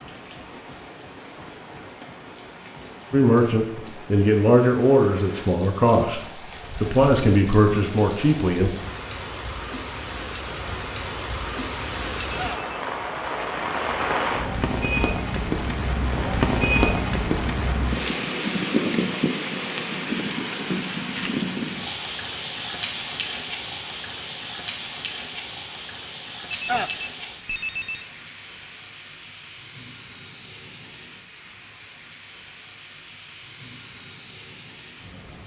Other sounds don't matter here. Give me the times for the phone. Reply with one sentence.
The phone can be heard from 12.2 to 12.7 s and from 26.5 to 28.1 s.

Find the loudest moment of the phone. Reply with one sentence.
The loudest moment of the phone is at 27 seconds.